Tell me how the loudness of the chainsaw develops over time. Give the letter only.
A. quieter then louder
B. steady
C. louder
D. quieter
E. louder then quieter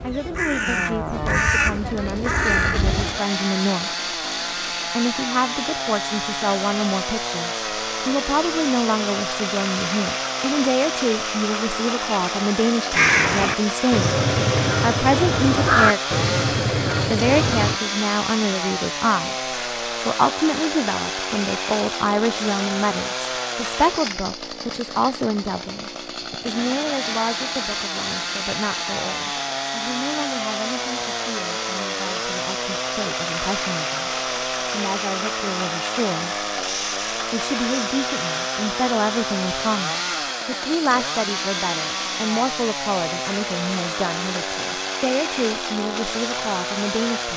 B.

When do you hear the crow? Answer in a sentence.
You can hear the crow from 0.0 to 3.2 s and from 12.9 to 17.8 s.